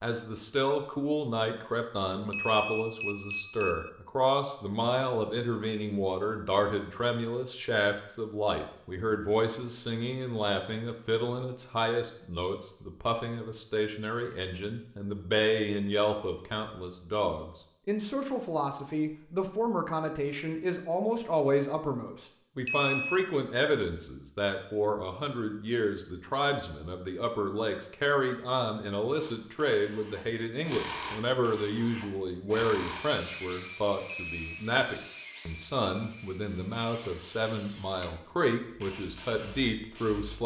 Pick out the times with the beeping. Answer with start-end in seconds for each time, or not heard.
2.3-3.9, 22.6-23.4, 34.3-34.7.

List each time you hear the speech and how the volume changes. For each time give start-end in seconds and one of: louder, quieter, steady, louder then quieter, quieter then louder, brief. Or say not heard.
0.0-40.4 steady.